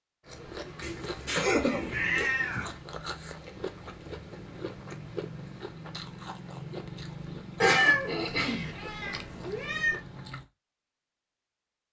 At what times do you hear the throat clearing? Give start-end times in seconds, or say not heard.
0.4-2.2, 7.6-8.7.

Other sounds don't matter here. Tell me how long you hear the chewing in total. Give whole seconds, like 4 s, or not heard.
10 s.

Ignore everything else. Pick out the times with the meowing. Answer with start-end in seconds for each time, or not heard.
0.8-2.8, 7.6-10.0.